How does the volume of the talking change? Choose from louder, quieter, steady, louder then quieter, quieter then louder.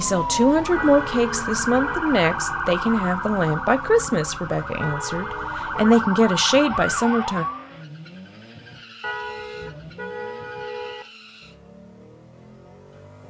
quieter then louder.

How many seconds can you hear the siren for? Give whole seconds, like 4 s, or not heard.
8 s.